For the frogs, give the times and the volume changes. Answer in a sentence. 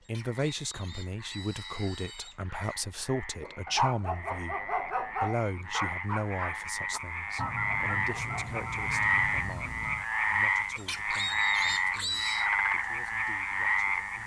You can hear the frogs from 0.0 to 14.2 s, getting louder.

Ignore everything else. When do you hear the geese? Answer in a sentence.
The geese can be heard from 7.3 to 10.1 s.